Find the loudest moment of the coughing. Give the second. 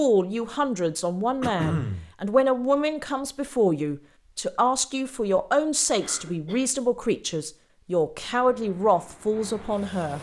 2 s.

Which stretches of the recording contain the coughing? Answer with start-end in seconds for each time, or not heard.
1.4-2.1, 6.0-6.7.